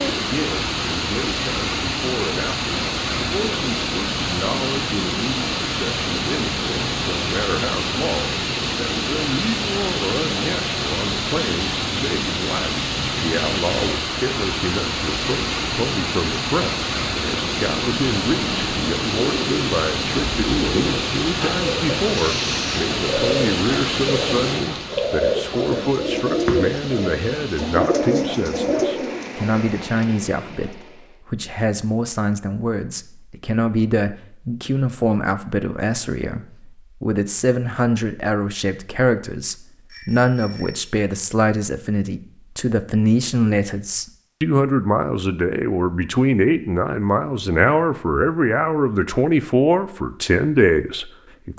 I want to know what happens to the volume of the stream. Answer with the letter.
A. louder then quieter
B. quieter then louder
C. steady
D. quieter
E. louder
D.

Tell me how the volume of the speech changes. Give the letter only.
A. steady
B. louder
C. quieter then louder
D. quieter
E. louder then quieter
B.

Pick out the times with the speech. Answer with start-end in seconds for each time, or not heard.
0.0-51.5.